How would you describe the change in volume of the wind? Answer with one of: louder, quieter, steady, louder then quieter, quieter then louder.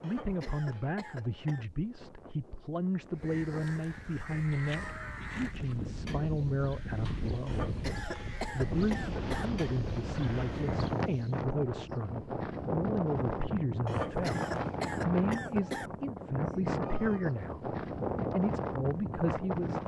louder.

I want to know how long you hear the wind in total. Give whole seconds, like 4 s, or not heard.
20 s.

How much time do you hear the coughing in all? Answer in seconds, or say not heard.
6 s.